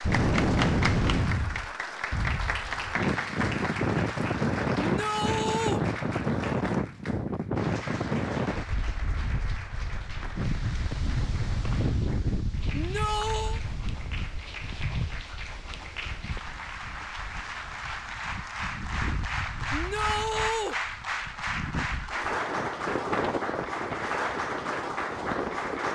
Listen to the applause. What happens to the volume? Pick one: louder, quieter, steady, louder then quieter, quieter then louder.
quieter then louder.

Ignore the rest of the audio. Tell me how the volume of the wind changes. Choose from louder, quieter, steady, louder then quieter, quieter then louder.
quieter then louder.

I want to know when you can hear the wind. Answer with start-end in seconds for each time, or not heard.
0.0-25.9.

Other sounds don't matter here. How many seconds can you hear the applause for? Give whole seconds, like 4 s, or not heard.
26 s.